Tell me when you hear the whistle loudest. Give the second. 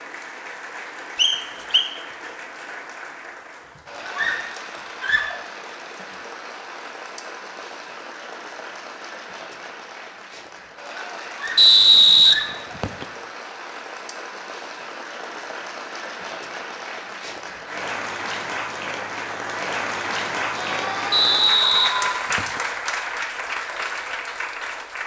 12 s.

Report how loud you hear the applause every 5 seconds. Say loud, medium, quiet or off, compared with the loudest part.
medium, medium, medium, loud, loud.